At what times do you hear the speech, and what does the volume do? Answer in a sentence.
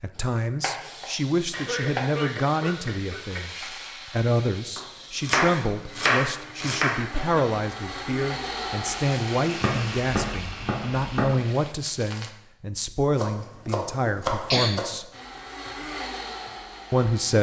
You can hear the speech from 0.0 to 15.1 s, at a steady volume; and briefly from 16.9 to 17.3 s.